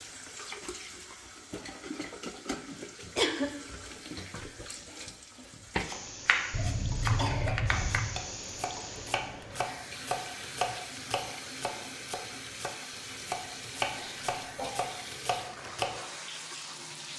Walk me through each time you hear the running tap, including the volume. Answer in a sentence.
You can hear the running tap from 0.0 to 17.1 s, at a steady volume.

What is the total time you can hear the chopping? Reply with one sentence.
The chopping can be heard for 10 seconds in total.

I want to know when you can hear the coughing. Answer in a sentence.
The coughing can be heard from 2.5 to 3.5 s, from 6.5 to 8.2 s and from 13.9 to 14.8 s.